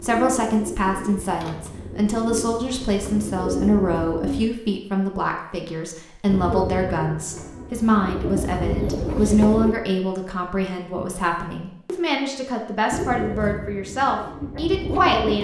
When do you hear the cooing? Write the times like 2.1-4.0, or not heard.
0.0-4.5, 6.2-9.8, 12.9-15.3.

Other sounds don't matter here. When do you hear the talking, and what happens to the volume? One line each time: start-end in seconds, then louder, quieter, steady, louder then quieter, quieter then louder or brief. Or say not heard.
0.0-15.3 steady.